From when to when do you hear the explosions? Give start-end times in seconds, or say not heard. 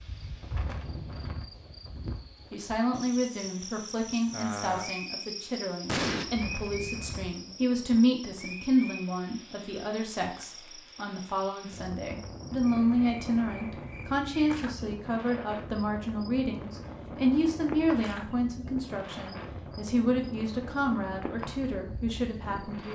5.8-6.2.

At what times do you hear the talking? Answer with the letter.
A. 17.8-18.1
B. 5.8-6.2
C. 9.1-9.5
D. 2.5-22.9
D.